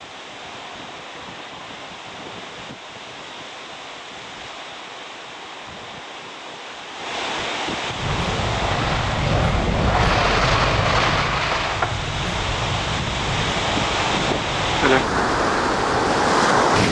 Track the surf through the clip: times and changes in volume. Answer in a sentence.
You can hear the surf from 0.0 to 16.8 s, getting louder.